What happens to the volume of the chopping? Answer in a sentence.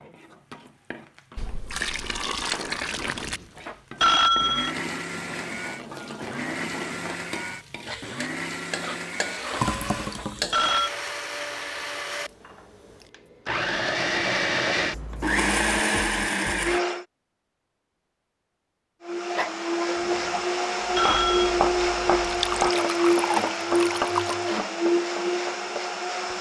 The volume of the chopping goes down.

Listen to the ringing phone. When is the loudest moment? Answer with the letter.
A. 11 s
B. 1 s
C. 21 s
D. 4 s
D.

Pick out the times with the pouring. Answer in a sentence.
You can hear the pouring from 1.4 to 3.4 s, from 9.6 to 10.6 s and from 22.2 to 24.6 s.